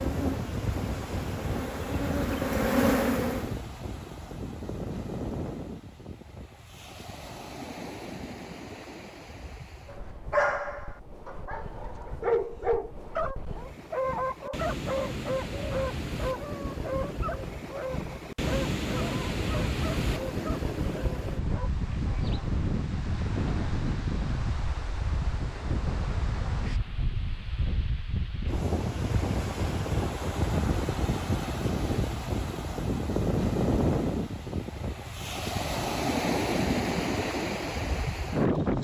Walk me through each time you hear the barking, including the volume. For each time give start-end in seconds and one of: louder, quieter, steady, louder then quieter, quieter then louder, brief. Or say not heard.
9.8-21.7 quieter.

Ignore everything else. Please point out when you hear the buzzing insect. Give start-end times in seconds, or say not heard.
0.0-3.6.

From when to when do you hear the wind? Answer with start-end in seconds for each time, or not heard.
0.0-38.8.